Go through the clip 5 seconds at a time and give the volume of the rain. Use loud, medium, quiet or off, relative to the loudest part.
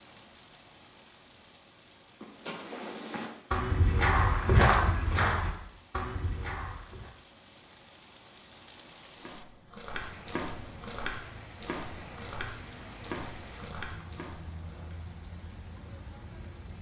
medium, medium, loud, loud.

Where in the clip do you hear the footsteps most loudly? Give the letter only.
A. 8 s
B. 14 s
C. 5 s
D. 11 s
C.